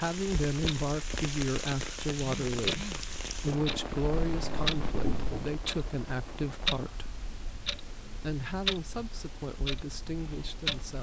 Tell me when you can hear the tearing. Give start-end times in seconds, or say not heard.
not heard.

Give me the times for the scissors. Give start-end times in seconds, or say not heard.
4.2-5.5.